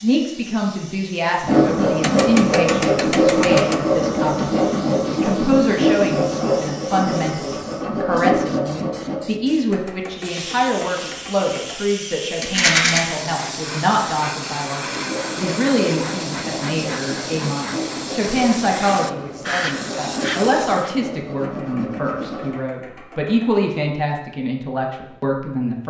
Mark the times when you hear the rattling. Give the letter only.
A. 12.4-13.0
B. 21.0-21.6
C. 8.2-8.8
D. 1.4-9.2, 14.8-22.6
A.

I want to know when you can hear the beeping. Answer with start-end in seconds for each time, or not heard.
not heard.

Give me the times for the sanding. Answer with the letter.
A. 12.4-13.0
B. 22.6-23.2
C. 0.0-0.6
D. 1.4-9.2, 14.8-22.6
D.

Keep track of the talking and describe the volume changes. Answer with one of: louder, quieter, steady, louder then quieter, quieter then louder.
steady.